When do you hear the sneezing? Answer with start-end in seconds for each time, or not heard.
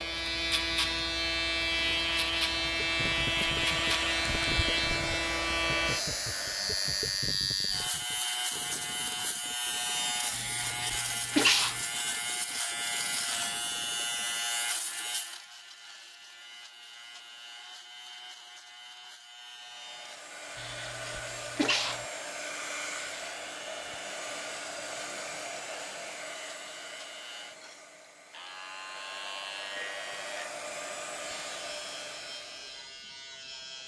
10.3-11.8, 20.6-22.1.